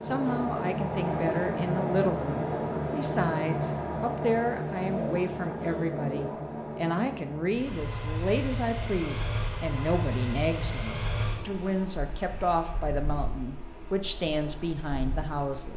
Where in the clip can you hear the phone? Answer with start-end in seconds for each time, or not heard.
not heard.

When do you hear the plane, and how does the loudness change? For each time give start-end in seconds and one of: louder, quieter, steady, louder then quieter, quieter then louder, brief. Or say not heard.
0.0-15.7 quieter.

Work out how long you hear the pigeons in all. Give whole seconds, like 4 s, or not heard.
2 s.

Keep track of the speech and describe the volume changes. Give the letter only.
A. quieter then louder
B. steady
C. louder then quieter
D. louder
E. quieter
B.